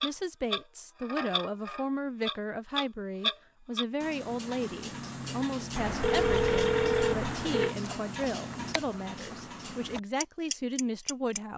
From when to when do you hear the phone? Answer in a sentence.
You can hear the phone from 5.8 to 7.8 s.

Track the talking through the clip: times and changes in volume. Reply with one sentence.
You can hear the talking from 0.0 to 11.5 s, at a steady volume.